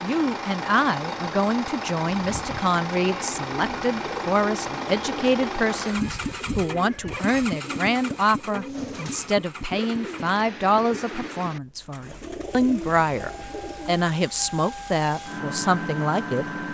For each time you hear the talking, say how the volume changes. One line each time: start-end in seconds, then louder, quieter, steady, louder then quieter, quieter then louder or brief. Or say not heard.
0.0-16.4 steady.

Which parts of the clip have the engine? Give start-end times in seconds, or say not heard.
0.0-16.6.